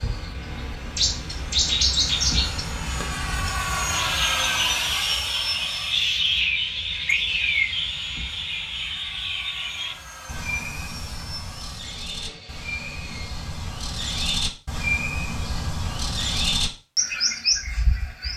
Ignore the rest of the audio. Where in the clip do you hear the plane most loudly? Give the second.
4 s.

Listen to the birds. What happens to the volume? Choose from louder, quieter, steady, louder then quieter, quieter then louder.
quieter then louder.